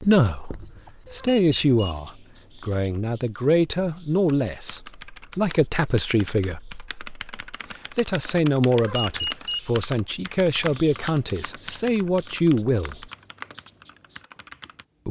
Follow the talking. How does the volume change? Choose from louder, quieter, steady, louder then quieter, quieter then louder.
steady.